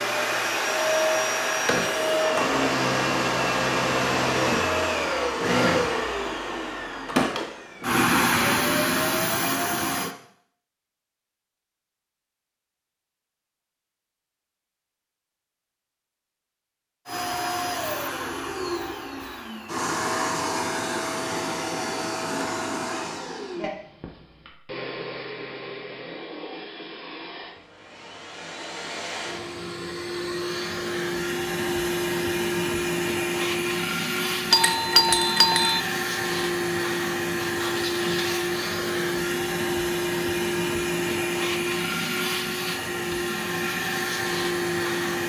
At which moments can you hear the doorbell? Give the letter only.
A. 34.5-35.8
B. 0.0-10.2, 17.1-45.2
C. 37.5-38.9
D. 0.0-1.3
A.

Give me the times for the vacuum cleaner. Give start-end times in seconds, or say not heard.
0.0-10.2, 17.1-45.2.